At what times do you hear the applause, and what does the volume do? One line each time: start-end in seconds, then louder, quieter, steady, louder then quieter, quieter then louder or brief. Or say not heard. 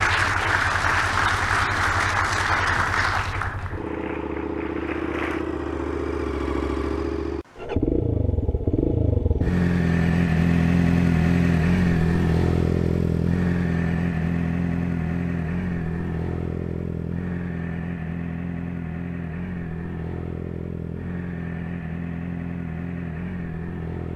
0.0-5.5 quieter.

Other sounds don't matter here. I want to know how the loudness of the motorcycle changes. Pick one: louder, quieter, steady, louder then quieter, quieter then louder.
louder then quieter.